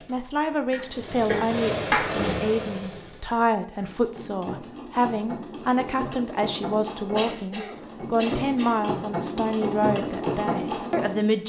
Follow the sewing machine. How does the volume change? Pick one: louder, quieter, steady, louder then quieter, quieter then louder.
quieter then louder.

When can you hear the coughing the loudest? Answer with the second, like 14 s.
2 s.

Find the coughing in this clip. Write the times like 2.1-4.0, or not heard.
0.7-2.0, 7.2-8.8.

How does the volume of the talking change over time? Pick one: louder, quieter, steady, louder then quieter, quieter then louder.
steady.